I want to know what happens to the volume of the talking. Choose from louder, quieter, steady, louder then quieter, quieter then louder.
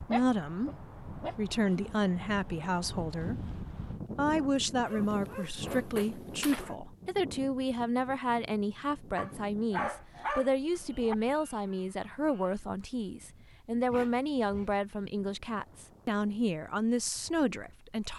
steady.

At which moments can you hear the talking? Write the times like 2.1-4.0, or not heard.
0.0-18.1.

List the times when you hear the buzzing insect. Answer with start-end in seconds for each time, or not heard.
not heard.